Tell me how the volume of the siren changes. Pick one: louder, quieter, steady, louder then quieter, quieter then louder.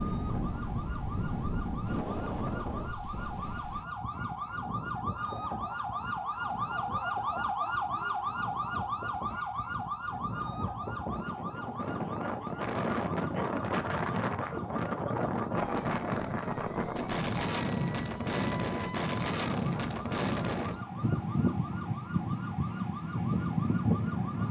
louder then quieter.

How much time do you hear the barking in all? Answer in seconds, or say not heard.
not heard.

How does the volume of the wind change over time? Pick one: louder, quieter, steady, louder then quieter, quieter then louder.
quieter then louder.